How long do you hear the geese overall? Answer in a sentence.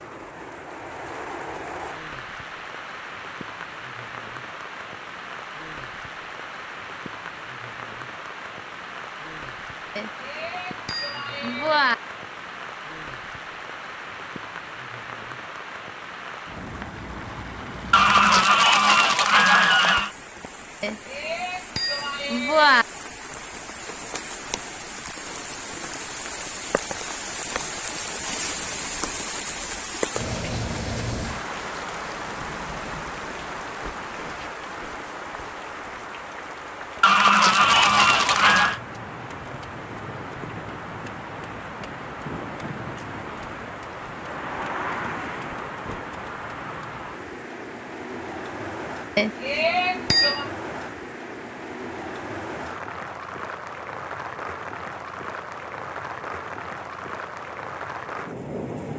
The geese can be heard for 4 seconds in total.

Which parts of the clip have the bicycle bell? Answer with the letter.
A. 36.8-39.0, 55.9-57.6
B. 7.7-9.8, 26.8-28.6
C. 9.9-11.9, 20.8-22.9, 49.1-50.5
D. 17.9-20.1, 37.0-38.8
C.